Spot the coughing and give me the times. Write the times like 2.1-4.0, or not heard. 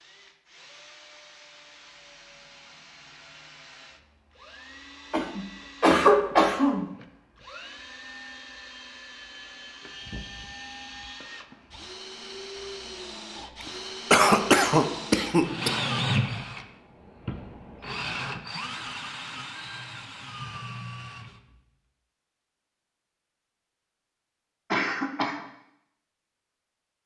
5.1-6.8, 14.1-15.8, 24.7-25.4.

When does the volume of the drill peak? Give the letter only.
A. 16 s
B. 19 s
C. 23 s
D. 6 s
A.